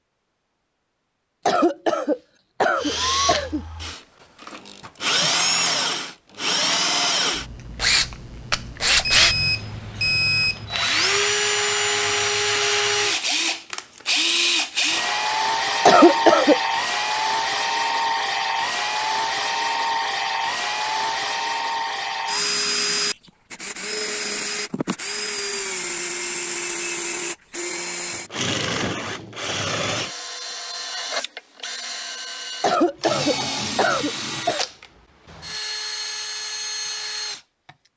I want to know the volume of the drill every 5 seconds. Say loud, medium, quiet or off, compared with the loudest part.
medium, loud, loud, loud, loud, medium, medium, medium.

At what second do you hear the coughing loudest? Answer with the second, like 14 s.
16 s.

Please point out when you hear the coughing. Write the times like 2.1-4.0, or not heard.
1.4-3.6, 15.8-16.6, 32.6-34.6.